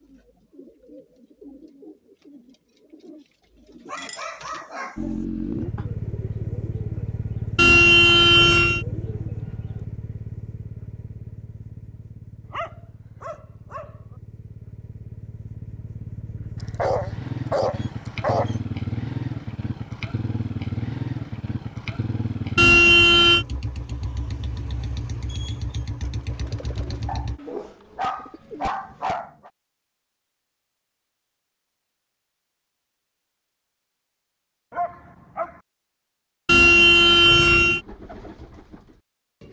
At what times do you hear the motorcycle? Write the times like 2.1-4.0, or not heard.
5.0-27.4.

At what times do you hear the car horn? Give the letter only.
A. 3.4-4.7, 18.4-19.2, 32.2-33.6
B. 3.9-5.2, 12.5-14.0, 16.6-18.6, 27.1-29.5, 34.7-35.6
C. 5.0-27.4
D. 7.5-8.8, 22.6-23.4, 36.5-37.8
D.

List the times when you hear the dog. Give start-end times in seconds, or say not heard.
3.9-5.2, 12.5-14.0, 16.6-18.6, 27.1-29.5, 34.7-35.6.